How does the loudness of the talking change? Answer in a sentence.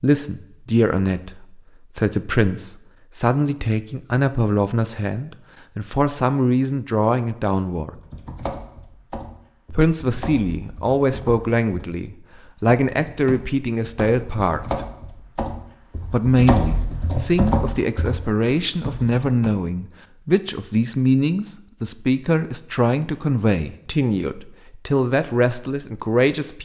The volume of the talking stays about the same.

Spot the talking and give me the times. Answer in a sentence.
The talking can be heard from 0.0 to 7.9 s, from 9.7 to 14.8 s and from 16.1 to 26.5 s.